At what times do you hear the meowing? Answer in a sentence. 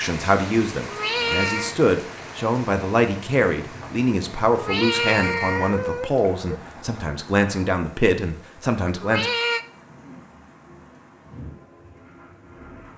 The meowing can be heard from 0.8 to 1.8 s, from 4.5 to 6.5 s and from 9.0 to 9.7 s.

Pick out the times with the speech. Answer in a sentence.
The speech can be heard from 0.0 to 9.3 s.